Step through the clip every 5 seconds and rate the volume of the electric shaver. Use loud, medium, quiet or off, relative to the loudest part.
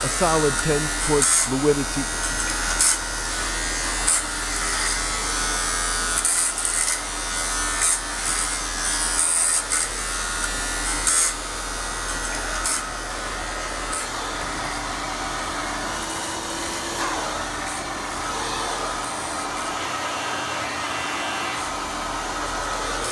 loud, loud, loud, medium, medium.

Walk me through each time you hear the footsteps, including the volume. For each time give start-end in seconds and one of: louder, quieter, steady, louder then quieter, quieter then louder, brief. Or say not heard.
not heard.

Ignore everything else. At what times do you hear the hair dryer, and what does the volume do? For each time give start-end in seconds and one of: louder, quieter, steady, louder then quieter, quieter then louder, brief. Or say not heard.
0.0-23.0 louder.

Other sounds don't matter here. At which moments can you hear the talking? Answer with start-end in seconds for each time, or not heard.
0.0-2.0.